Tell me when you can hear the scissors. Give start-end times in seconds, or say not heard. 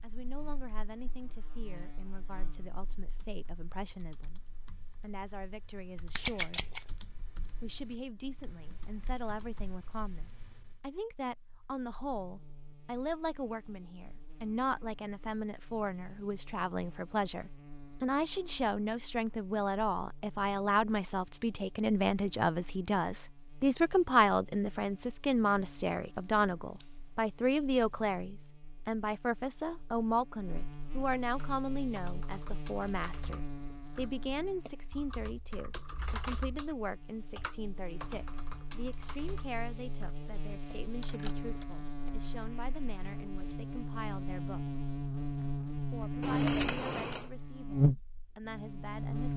6.2-6.8, 26.1-28.1, 46.2-47.3.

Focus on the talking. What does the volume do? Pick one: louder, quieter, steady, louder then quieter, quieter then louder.
louder then quieter.